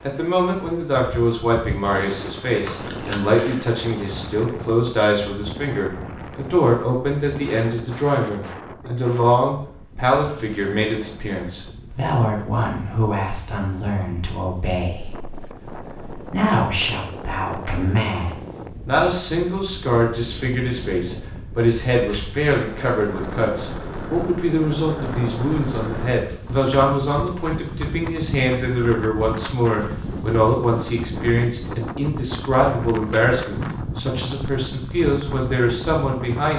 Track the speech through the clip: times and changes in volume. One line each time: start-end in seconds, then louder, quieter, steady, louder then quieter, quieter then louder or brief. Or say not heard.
0.0-36.5 steady.